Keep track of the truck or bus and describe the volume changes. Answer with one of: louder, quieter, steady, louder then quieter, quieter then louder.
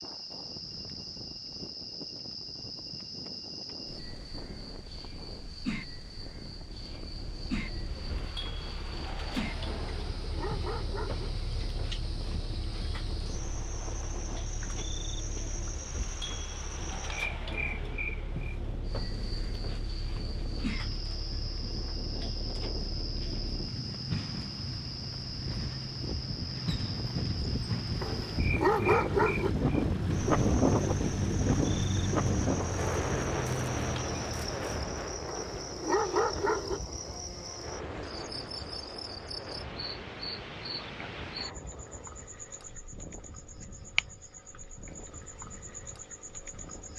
louder.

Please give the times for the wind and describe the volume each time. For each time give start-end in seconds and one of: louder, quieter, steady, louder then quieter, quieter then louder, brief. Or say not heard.
0.0-46.9 louder then quieter.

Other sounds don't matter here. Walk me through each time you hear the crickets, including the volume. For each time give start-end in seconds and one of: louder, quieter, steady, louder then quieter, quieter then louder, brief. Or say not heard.
0.0-46.9 steady.